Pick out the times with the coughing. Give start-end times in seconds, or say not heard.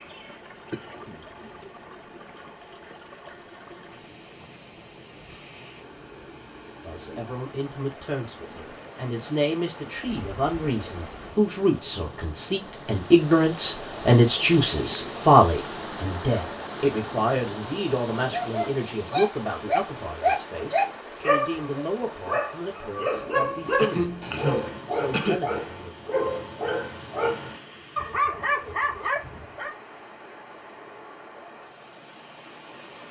0.7-1.6, 23.8-25.4.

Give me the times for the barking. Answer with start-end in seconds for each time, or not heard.
18.3-29.8.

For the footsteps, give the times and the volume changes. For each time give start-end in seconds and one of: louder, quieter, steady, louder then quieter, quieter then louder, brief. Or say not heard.
not heard.